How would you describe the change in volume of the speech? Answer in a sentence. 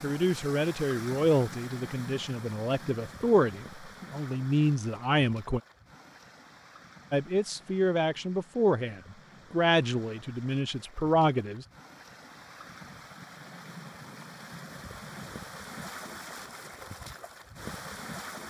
The volume of the speech stays about the same.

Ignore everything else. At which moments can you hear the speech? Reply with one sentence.
The speech can be heard from 0.0 to 5.6 s and from 7.1 to 11.7 s.